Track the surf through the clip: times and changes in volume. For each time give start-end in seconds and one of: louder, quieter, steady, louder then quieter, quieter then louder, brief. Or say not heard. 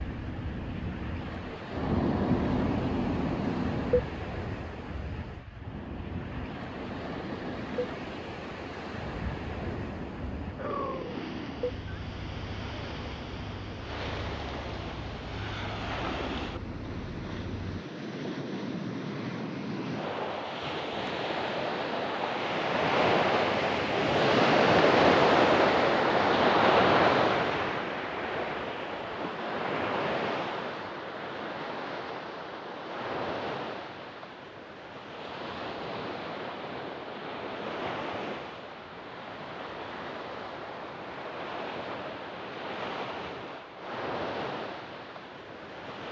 0.0-46.0 louder then quieter.